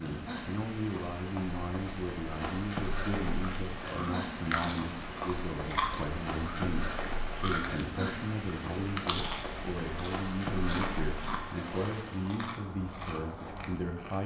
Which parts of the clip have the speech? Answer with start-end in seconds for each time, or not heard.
0.0-14.2.